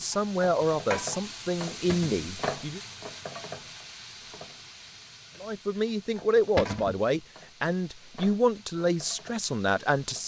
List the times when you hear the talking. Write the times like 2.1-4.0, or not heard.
0.0-2.8, 5.4-10.2.